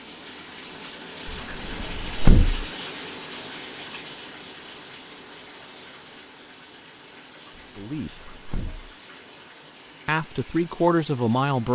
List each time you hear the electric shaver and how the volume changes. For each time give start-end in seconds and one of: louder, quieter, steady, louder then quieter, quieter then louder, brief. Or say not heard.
not heard.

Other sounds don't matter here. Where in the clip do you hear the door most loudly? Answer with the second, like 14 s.
2 s.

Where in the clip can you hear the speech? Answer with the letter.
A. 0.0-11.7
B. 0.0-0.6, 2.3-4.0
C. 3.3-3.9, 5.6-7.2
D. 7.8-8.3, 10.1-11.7
D.